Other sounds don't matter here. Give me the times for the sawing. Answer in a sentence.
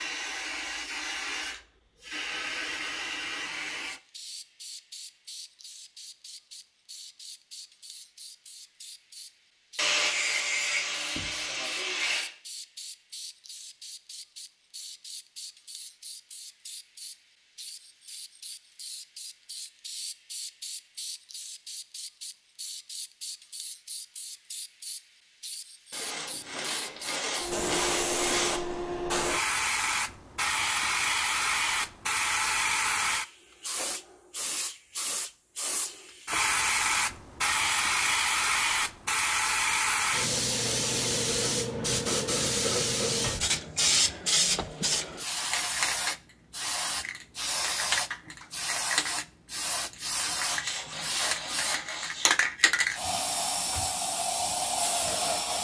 The sawing can be heard from 9.8 to 12.3 s, from 25.9 to 28.8 s and from 50.4 to 52.5 s.